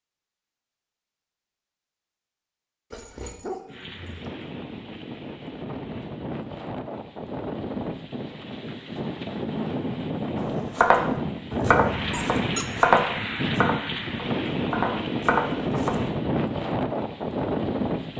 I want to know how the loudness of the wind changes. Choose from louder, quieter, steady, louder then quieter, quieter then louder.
louder.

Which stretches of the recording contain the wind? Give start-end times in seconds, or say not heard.
3.6-18.1.